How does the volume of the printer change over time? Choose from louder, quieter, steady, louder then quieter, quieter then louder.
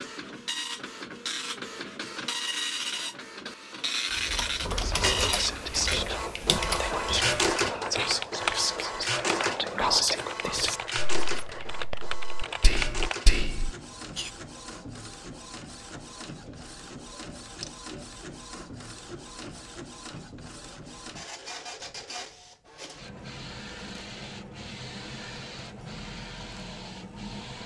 quieter.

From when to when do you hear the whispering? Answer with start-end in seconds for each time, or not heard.
4.8-14.3.